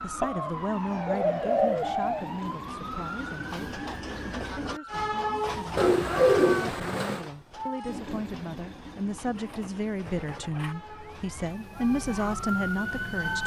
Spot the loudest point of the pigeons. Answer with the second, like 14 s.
6 s.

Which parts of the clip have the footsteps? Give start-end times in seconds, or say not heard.
not heard.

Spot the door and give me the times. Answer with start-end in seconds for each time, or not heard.
not heard.